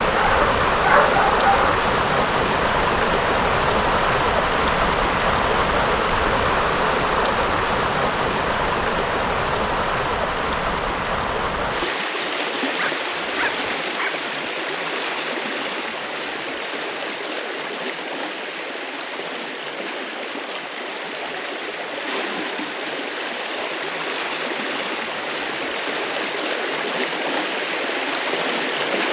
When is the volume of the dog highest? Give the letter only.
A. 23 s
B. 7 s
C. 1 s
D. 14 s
C.